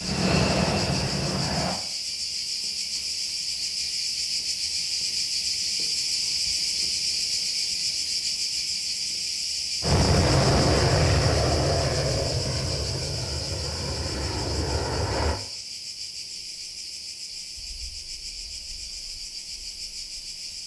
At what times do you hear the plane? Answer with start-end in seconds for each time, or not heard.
0.0-1.8, 9.8-15.4.